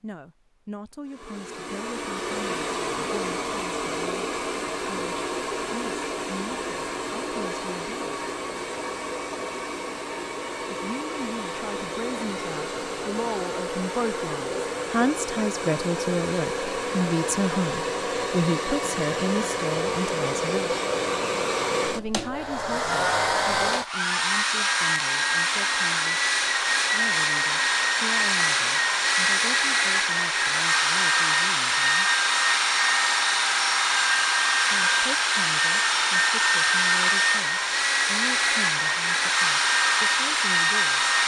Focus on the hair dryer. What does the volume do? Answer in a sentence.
The volume of the hair dryer goes up.